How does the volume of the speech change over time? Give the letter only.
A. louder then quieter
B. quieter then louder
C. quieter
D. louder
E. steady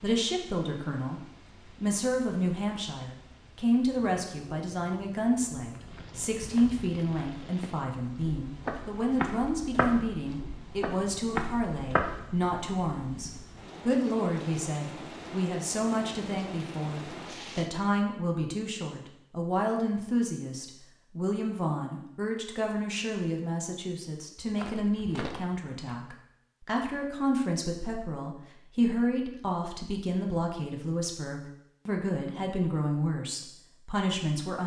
E.